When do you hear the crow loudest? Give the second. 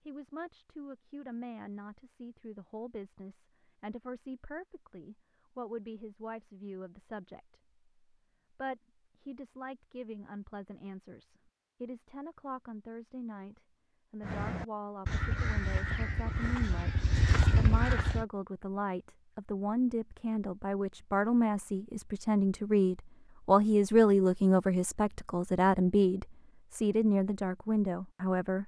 18 s.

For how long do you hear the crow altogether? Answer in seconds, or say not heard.
4 s.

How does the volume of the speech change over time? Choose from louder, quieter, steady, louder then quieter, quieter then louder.
louder.